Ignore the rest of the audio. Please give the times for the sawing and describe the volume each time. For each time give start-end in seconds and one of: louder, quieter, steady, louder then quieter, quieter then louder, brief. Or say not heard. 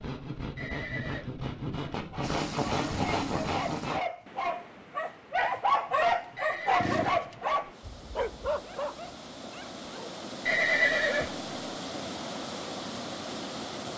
0.0-4.0 louder.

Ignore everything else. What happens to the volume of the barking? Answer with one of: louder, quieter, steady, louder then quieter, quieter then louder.
louder then quieter.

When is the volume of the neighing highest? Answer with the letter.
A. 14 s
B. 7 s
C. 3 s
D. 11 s
D.